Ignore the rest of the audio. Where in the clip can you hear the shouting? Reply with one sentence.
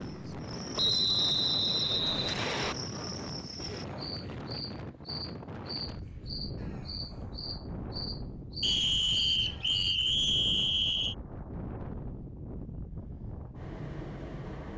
You can't hear the shouting here.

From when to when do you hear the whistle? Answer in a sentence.
You can hear the whistle from 0.8 to 2.8 s and from 8.6 to 11.2 s.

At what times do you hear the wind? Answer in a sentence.
The wind can be heard from 0.0 to 14.7 s.